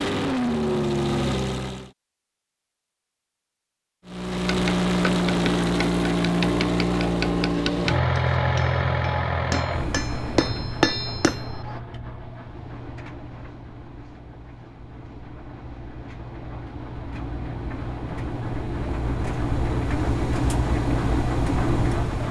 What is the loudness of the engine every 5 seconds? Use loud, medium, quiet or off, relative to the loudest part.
loud, loud, quiet, medium, loud.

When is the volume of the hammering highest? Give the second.
11 s.